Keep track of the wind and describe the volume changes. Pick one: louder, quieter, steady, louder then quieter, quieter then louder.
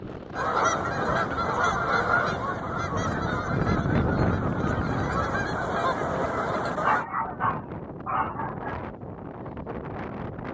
louder then quieter.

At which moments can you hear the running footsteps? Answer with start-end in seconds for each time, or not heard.
not heard.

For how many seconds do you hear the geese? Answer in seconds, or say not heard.
7 s.